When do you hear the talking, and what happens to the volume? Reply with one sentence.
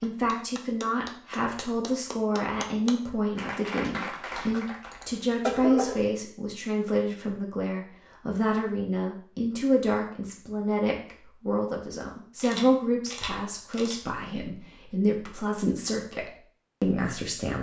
You can hear the talking from 0.0 to 17.5 s, at a steady volume.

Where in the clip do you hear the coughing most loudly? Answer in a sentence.
The volume of the coughing peaks at 6 seconds.